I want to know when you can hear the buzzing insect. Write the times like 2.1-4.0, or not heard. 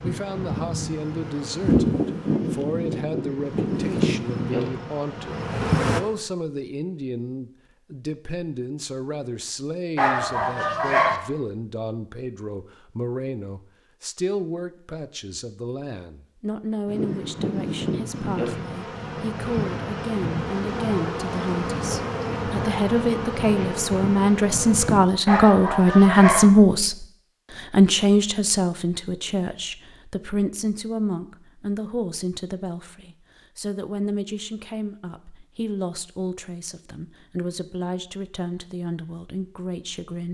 0.0-6.0, 16.9-25.0.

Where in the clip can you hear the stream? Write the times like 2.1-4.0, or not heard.
not heard.